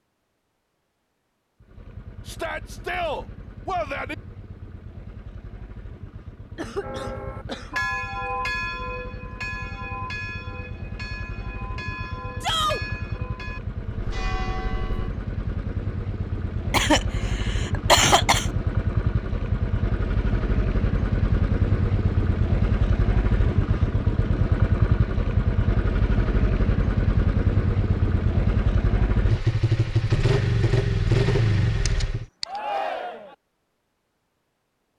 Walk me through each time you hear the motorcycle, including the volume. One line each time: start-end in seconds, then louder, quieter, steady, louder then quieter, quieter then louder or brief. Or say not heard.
1.6-32.2 louder.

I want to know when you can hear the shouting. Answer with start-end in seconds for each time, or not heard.
2.2-4.2, 12.4-12.8, 32.5-33.4.